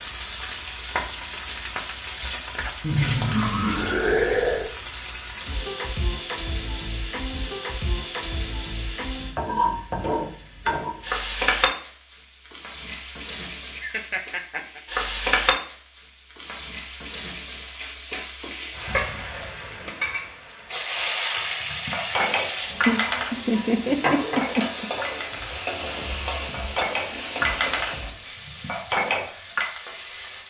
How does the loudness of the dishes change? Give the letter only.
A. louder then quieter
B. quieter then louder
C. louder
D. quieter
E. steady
B.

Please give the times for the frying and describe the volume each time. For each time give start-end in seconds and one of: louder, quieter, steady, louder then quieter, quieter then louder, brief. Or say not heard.
0.0-30.4 steady.